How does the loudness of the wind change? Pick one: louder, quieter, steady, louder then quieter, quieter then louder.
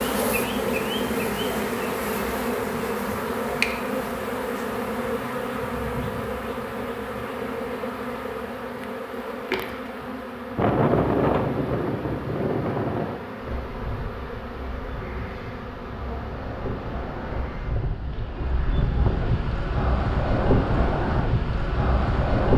quieter then louder.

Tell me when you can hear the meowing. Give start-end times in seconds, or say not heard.
not heard.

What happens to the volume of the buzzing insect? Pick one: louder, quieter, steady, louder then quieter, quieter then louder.
quieter.